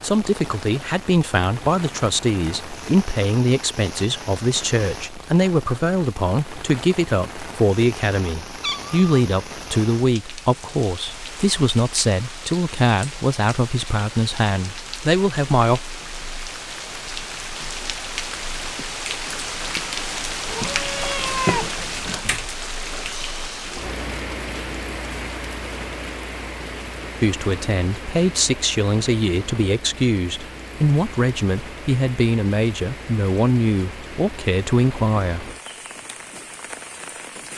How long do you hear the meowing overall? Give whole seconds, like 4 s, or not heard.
2 s.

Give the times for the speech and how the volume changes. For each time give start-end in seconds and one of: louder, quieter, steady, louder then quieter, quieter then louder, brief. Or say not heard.
0.0-15.8 steady
27.2-35.5 steady.